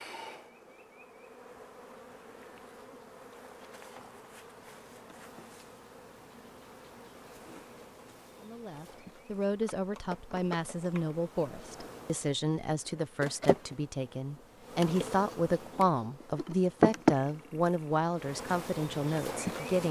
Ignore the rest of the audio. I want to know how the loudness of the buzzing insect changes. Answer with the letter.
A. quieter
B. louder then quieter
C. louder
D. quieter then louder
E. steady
C.